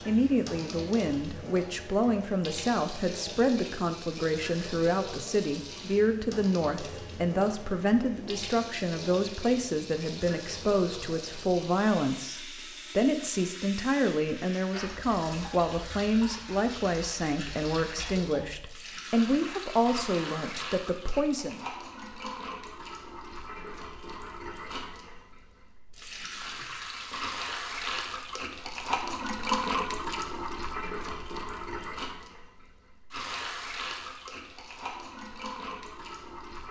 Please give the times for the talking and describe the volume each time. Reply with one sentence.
The talking can be heard from 0.1 to 21.6 s, at a steady volume.